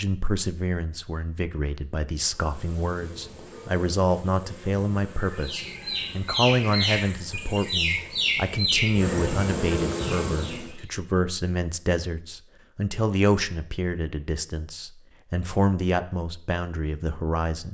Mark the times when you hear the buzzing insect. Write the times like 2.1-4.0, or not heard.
2.1-10.8.